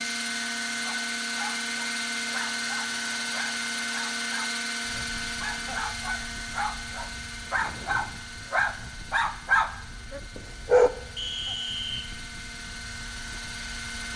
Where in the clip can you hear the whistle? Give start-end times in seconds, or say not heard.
11.2-12.1.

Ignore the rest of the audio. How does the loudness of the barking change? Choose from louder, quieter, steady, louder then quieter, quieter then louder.
louder.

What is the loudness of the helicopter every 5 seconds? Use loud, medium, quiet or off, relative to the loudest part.
loud, medium, medium.